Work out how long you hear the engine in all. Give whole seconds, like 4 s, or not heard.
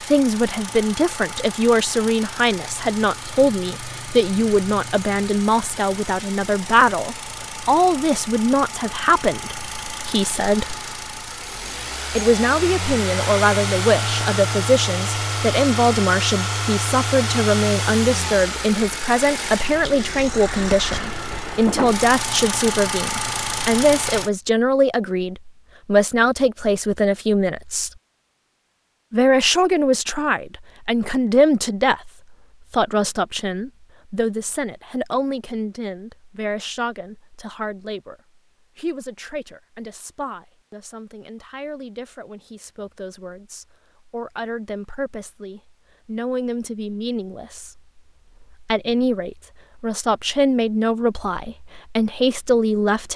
24 s.